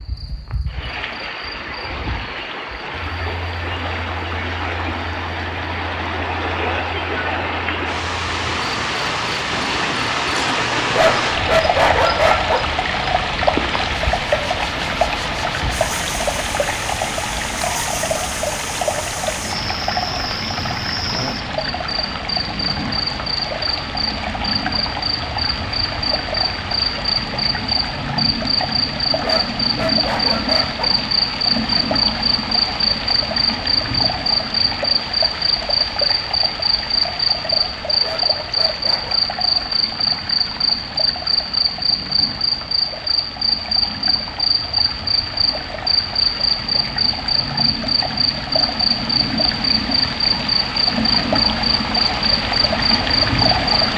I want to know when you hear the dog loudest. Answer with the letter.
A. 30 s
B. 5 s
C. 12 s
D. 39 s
C.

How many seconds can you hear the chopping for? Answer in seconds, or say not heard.
not heard.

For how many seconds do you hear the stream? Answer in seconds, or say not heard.
54 s.